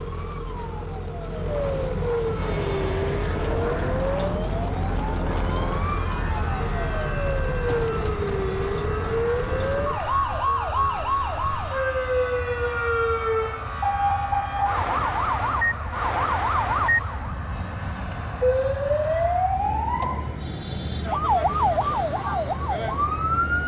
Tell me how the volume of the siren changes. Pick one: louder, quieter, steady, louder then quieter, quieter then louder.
steady.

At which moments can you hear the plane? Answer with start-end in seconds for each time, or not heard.
2.4-23.6.